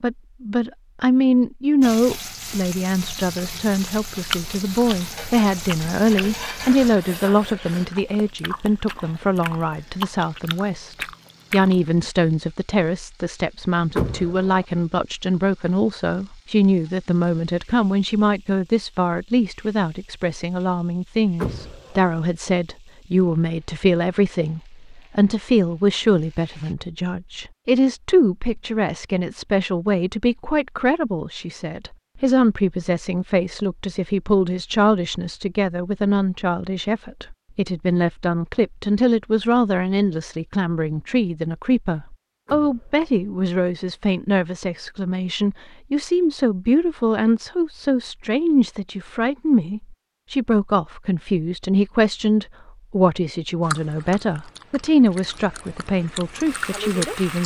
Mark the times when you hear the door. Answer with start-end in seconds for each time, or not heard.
13.9-14.7, 21.4-22.1, 42.5-43.1.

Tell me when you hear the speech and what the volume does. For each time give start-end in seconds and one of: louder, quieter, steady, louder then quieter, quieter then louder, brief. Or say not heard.
0.0-57.4 steady.